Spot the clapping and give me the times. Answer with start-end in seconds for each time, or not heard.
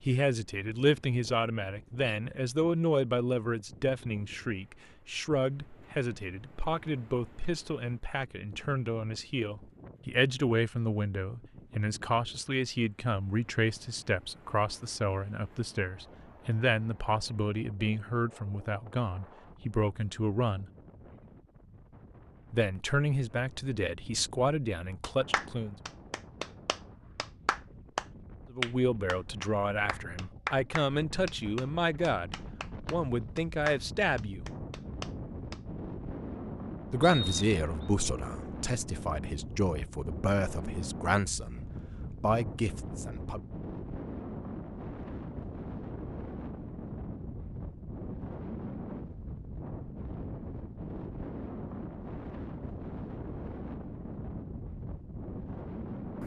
25.0-35.6.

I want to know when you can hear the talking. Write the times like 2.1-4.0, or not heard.
0.0-20.7, 22.5-25.8, 28.5-34.5, 36.9-43.4.